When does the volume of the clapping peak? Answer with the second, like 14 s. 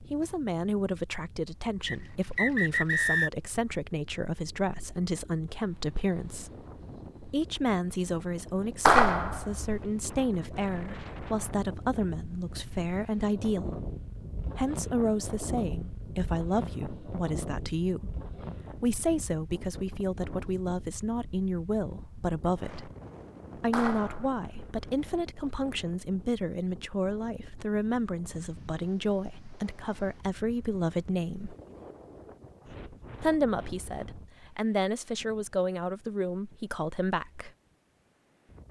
9 s.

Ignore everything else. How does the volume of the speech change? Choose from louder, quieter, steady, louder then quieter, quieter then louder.
steady.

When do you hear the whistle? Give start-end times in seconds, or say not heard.
1.9-3.3.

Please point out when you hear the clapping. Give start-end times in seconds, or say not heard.
8.8-9.8, 23.7-24.4.